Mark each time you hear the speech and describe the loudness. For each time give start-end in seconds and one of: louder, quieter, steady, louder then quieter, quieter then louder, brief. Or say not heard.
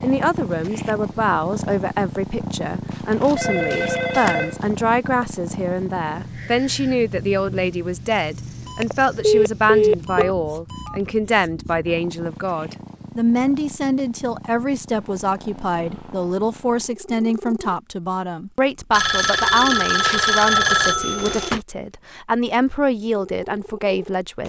0.0-24.4 steady.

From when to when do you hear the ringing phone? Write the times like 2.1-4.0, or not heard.
2.9-4.5, 8.7-11.0, 18.9-21.6.